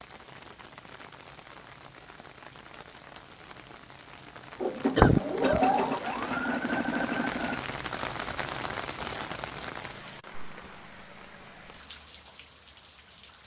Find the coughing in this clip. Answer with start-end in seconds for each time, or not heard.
5.0-5.6.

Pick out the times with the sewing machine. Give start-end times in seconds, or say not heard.
4.6-7.7.